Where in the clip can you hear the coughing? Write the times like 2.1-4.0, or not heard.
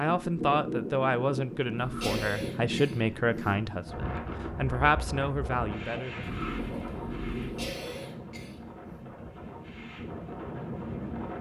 2.0-3.5, 7.5-8.6.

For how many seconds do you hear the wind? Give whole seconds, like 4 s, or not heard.
11 s.